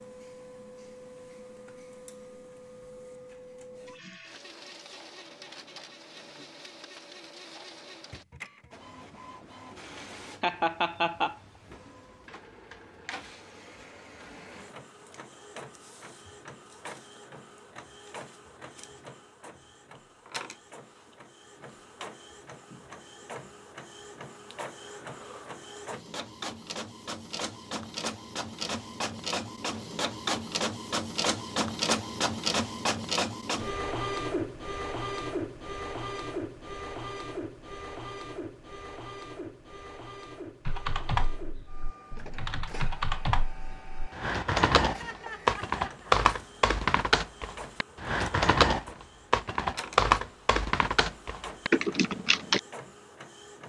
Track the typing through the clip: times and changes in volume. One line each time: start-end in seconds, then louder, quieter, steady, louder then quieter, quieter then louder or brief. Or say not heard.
40.6-52.6 louder.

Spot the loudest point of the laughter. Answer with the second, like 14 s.
11 s.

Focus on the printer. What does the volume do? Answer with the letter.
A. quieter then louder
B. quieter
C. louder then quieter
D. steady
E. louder
C.